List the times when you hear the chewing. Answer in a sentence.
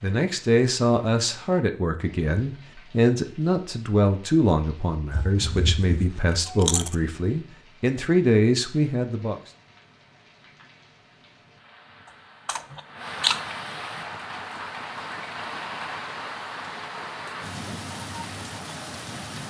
You can hear the chewing from 5.1 to 7.0 s and from 12.4 to 13.4 s.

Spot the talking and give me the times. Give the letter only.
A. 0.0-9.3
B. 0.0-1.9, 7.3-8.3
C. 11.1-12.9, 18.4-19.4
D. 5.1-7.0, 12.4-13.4
A.